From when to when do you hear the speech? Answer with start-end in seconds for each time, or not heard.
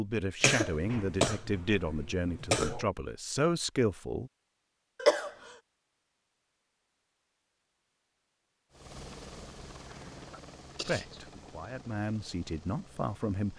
0.0-4.3, 10.8-13.5.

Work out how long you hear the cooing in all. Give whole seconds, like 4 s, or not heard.
not heard.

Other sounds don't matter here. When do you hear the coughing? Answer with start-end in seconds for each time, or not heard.
0.4-2.9, 5.0-5.5, 9.8-11.2.